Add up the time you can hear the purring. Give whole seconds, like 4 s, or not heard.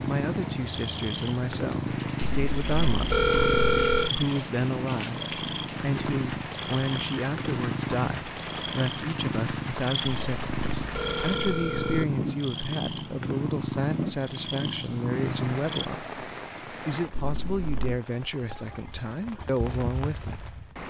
16 s.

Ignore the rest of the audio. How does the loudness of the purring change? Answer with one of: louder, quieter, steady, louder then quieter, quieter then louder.
steady.